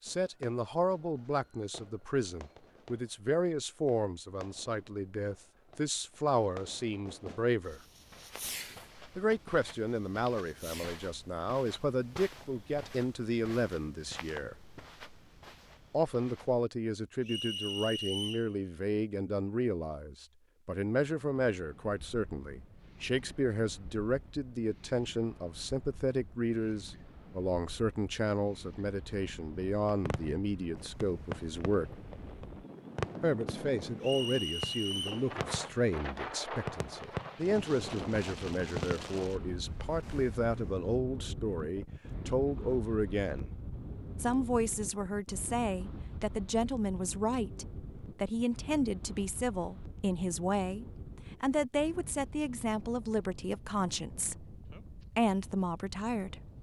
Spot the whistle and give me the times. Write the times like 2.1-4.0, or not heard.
17.2-18.5, 34.0-35.2.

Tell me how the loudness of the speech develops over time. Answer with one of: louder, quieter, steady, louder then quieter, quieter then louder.
steady.